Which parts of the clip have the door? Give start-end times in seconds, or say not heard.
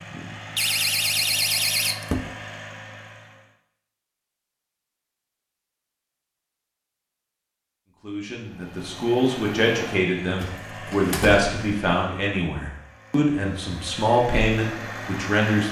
0.6-2.3, 10.4-11.6.